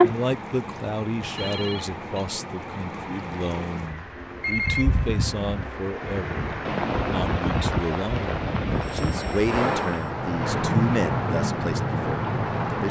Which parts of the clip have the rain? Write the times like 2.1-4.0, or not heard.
0.0-12.8.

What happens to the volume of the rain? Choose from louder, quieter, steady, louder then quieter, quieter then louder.
louder.